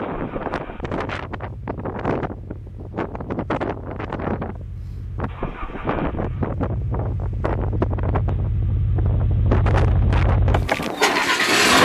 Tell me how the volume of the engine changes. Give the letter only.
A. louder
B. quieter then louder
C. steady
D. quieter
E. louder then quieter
A.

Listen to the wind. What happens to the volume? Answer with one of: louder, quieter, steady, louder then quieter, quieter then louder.
steady.